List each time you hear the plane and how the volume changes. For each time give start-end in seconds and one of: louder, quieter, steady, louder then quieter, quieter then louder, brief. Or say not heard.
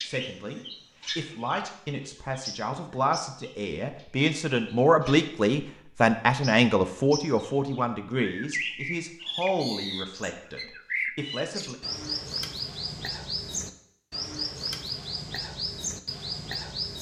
not heard.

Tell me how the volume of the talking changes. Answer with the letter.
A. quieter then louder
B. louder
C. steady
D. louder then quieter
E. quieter
D.